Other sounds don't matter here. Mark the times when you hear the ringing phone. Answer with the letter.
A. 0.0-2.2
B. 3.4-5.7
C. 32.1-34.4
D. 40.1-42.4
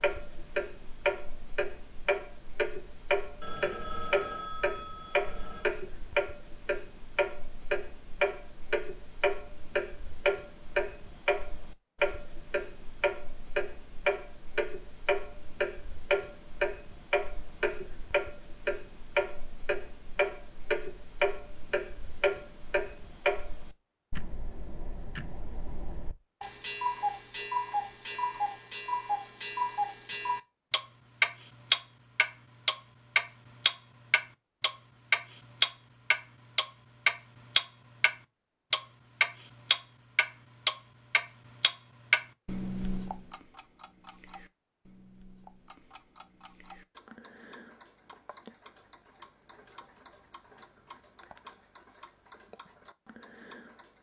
B.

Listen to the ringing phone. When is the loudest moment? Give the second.
4 s.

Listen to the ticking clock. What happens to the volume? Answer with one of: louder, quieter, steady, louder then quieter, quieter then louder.
louder then quieter.